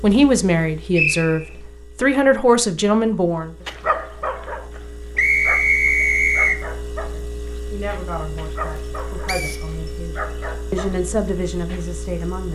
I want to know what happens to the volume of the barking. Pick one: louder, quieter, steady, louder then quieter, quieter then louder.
quieter then louder.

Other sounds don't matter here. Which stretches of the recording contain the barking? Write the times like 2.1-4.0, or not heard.
3.6-11.9.